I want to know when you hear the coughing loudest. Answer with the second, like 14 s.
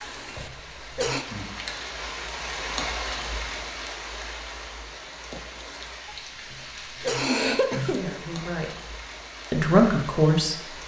7 s.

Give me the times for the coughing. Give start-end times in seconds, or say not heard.
0.0-1.2, 6.0-8.2.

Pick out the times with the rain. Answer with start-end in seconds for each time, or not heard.
0.0-10.8.